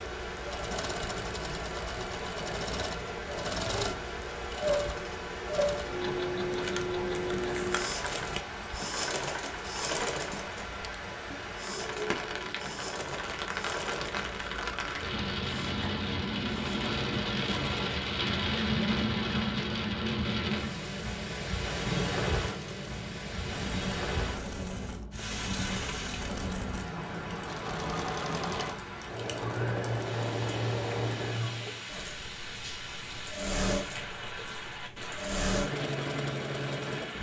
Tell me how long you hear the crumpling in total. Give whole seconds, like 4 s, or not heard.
2 s.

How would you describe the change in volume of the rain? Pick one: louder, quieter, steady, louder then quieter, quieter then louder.
louder then quieter.